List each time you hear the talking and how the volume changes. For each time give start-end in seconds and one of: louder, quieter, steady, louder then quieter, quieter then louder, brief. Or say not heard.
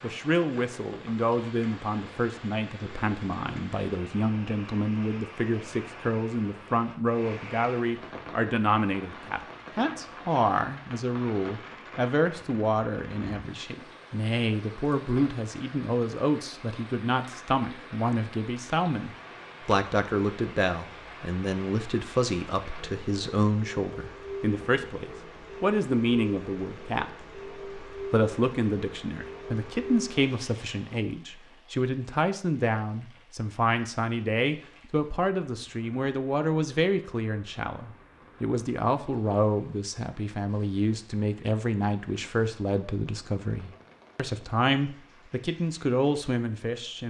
0.0-47.0 steady.